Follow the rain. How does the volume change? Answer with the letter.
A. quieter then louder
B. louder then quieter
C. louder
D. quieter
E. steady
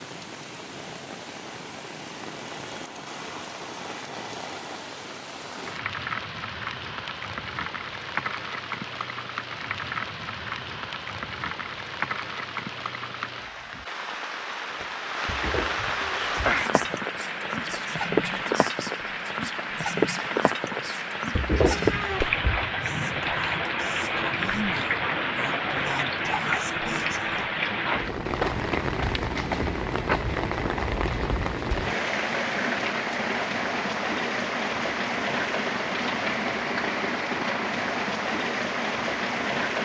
C.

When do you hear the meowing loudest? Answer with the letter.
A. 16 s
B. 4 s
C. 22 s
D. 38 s
C.